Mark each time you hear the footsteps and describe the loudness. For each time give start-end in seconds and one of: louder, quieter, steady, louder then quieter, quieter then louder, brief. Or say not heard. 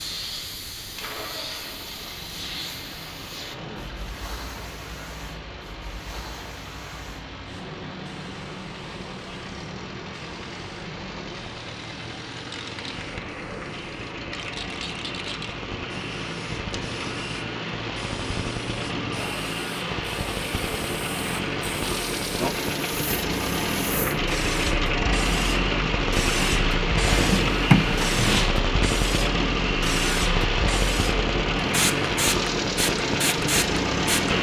not heard.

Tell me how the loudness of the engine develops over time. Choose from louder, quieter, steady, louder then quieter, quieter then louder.
louder.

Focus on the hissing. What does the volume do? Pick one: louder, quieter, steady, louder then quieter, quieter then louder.
louder.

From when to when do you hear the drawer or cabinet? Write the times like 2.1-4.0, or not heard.
27.1-28.5.